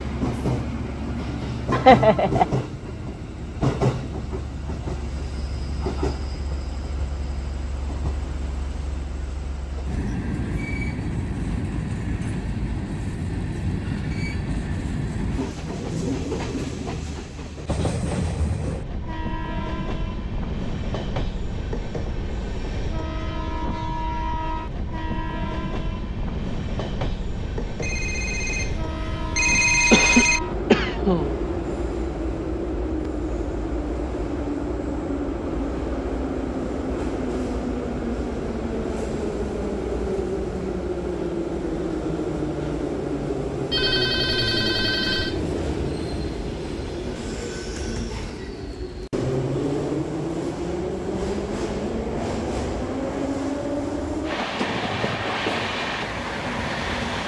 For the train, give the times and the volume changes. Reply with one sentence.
You can hear the train from 0.0 to 57.2 s, at a steady volume.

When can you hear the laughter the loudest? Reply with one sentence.
The volume of the laughter peaks at 2 seconds.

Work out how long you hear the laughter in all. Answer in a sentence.
You can hear the laughter for 2 seconds altogether.